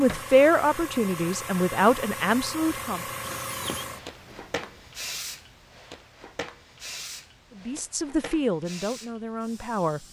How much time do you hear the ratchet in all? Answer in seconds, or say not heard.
not heard.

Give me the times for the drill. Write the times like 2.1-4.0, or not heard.
2.6-4.7.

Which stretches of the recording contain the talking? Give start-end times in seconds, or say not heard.
0.0-3.0, 7.5-10.0.